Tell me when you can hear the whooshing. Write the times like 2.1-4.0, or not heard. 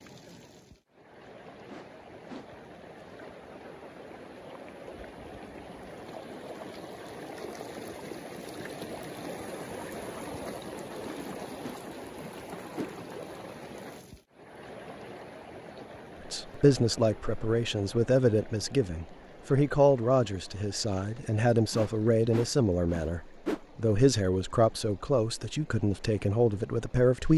1.6-2.5, 11.0-12.9, 21.7-23.6.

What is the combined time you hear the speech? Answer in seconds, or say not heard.
11 s.